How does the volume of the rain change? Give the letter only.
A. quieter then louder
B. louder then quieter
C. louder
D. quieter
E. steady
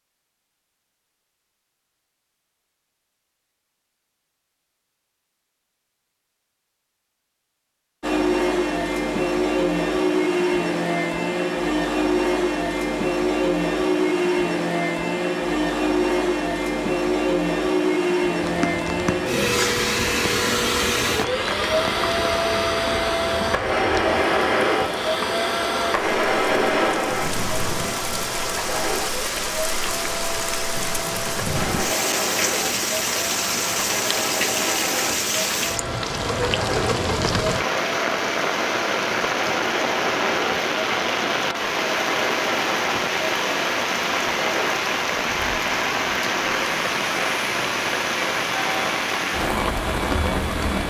C.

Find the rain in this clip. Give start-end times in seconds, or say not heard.
18.4-50.8.